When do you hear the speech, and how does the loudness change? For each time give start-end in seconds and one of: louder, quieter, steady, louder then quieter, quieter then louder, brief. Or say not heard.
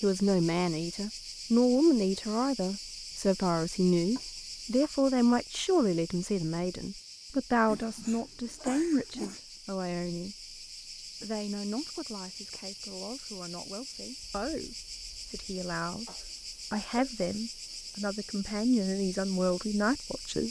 0.0-20.4 quieter then louder.